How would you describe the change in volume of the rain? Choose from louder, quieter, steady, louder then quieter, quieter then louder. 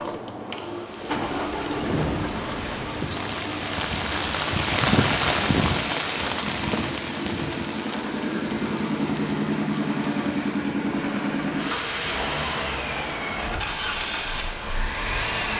louder then quieter.